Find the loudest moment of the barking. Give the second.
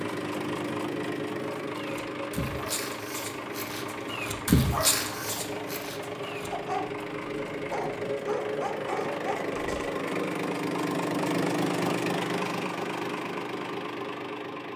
5 s.